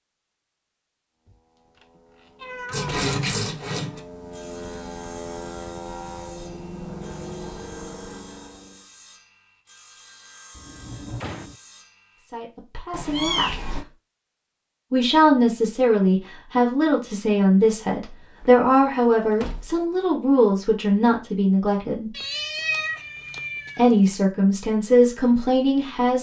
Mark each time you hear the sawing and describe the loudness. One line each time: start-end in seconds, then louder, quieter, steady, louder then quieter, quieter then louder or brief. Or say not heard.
2.7-12.3 quieter.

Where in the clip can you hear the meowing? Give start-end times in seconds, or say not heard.
1.9-3.0, 12.9-13.8, 22.1-23.9.